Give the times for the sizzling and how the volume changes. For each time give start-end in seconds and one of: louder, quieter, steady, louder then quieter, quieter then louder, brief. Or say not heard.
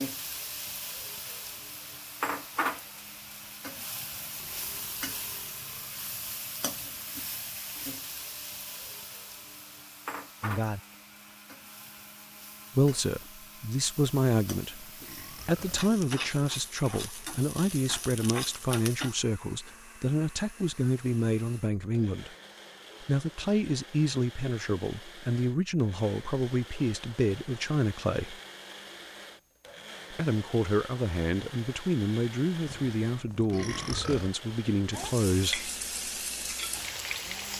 0.0-19.1 quieter then louder
34.9-37.5 brief.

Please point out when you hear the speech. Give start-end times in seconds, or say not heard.
10.4-10.8, 12.8-22.3, 23.0-28.4, 30.1-35.7.